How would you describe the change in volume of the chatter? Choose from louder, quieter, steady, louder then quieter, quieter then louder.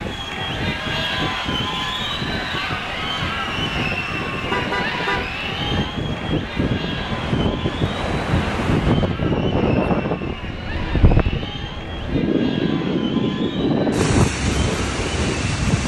quieter.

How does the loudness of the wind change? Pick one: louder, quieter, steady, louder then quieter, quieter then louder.
louder.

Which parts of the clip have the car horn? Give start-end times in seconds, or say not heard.
4.3-5.3.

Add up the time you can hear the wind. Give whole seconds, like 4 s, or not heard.
16 s.